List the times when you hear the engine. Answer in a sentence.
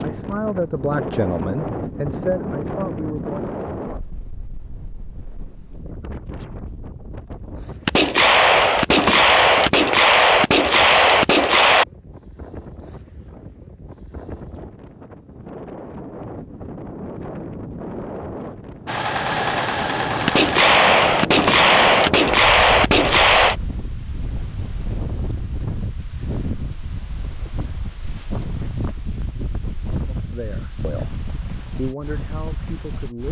You can hear the engine from 18.9 to 20.8 s.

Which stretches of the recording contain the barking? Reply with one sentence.
You can't hear the barking here.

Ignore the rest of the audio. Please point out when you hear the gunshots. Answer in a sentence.
The gunshots can be heard from 7.8 to 11.8 s and from 20.2 to 23.6 s.